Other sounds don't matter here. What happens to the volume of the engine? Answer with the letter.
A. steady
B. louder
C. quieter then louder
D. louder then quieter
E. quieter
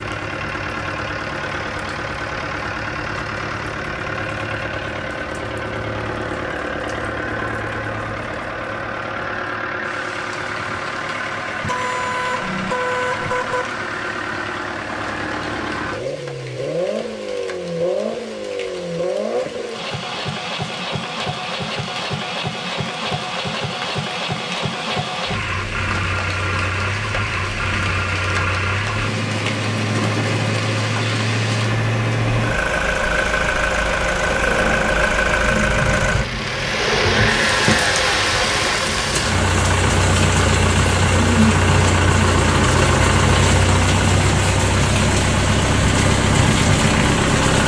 B.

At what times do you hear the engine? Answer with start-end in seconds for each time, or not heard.
0.0-47.6.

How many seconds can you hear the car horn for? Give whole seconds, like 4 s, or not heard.
2 s.